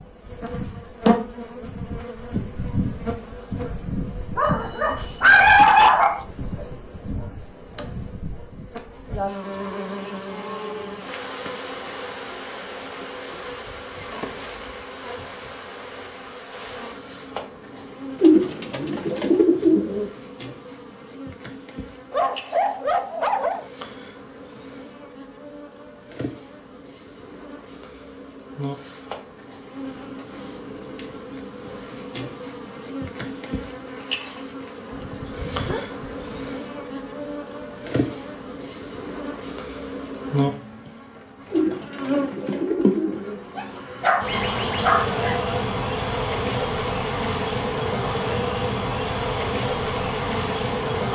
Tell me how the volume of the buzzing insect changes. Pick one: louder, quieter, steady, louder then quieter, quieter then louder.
quieter then louder.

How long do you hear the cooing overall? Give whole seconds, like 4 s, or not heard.
4 s.